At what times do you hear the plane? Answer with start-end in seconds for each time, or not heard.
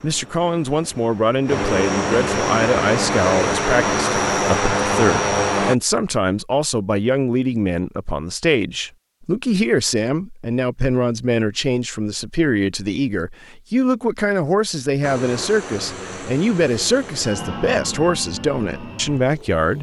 0.0-5.8, 15.0-19.7.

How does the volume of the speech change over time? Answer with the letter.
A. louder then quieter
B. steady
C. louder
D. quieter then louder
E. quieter
B.